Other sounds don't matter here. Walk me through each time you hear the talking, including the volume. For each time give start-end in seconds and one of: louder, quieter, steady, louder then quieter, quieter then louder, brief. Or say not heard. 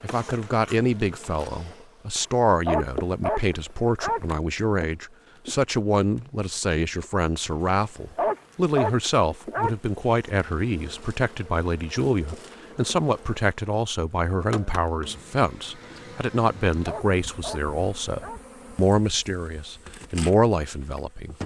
0.0-21.4 steady.